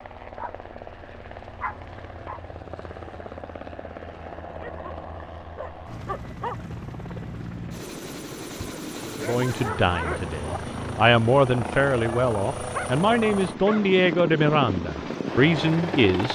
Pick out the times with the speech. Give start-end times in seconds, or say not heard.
9.2-16.3.